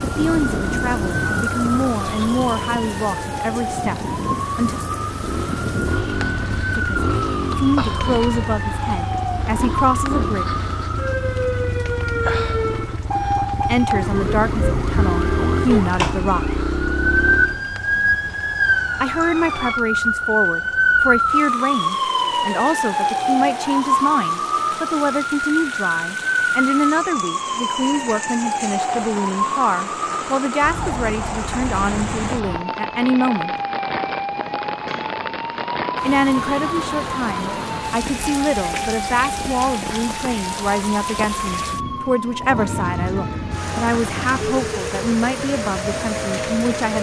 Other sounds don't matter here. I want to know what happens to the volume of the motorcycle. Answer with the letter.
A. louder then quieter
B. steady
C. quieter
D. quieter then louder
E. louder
E.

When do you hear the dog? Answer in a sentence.
The dog can't be heard in this clip.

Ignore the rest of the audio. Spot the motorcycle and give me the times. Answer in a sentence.
The motorcycle can be heard from 0.0 to 17.6 s.